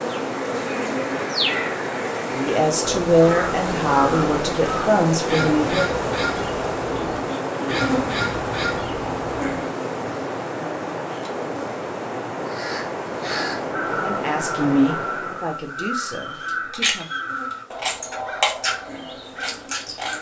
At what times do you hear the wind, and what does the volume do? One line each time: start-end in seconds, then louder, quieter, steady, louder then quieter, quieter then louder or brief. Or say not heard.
0.0-15.6 steady.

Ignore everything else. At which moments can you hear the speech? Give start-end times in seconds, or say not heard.
2.4-5.9, 14.0-17.1.